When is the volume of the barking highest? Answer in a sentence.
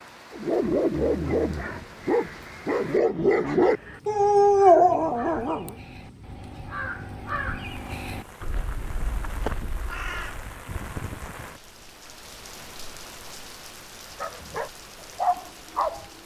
The volume of the barking peaks at 5 seconds.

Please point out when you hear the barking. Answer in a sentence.
The barking can be heard from 0.3 to 5.8 s and from 14.2 to 16.0 s.